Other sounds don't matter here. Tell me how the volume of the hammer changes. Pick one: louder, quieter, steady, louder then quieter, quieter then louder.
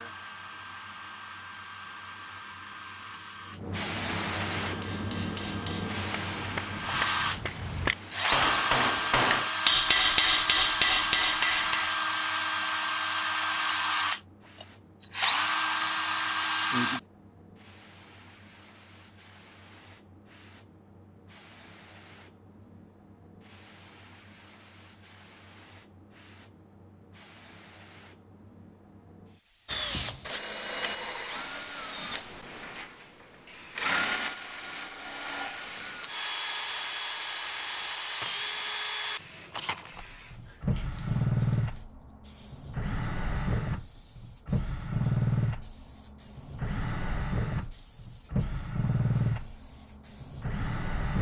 louder.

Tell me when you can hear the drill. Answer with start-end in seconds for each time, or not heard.
0.0-17.0, 29.6-51.1.